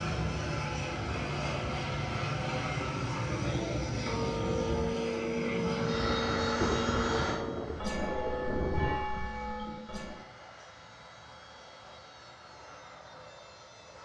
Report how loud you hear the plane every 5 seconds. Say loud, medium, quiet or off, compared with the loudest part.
loud, loud, quiet.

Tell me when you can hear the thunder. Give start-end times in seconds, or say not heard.
5.9-9.1.